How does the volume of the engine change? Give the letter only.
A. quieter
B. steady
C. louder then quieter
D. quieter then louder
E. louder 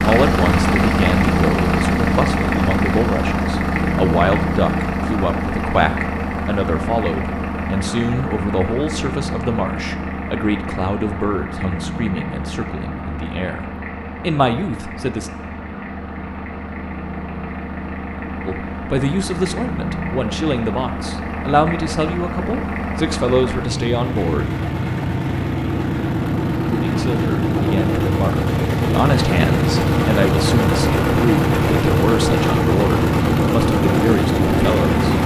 D.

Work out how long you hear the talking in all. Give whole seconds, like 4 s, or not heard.
30 s.